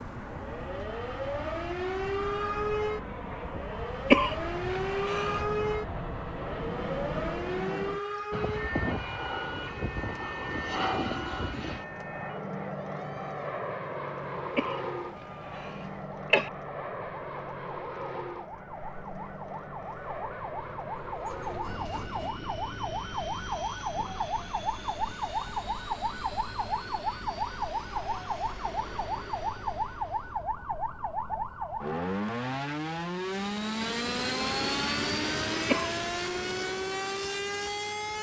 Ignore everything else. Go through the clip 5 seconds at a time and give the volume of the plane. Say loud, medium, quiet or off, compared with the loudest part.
medium, loud, loud, medium, medium, medium, loud, loud.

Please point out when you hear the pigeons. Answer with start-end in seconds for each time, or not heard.
not heard.